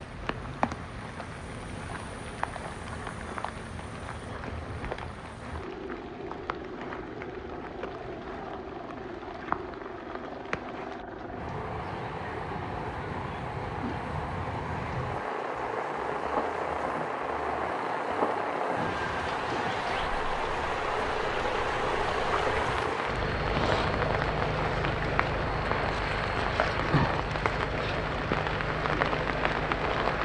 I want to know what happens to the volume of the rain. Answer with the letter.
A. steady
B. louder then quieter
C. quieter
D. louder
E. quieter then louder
D.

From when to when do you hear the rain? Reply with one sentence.
You can hear the rain from 0.0 to 30.2 s.